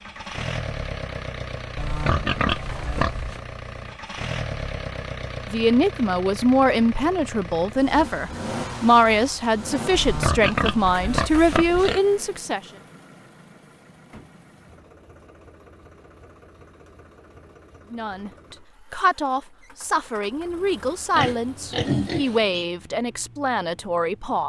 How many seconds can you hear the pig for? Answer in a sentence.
You can hear the pig for 5 seconds altogether.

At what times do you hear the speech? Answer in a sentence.
You can hear the speech from 5.5 to 12.6 s and from 17.9 to 24.4 s.